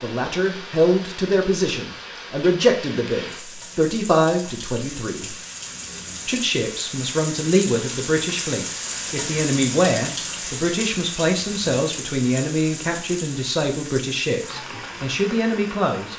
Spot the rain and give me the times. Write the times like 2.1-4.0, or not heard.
0.0-16.1.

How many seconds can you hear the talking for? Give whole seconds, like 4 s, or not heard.
15 s.